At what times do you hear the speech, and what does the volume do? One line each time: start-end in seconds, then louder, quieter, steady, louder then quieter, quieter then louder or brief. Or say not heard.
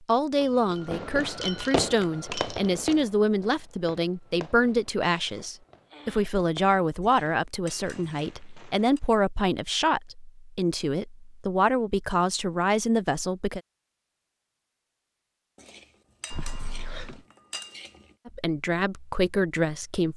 0.1-13.6 steady
18.2-20.1 brief.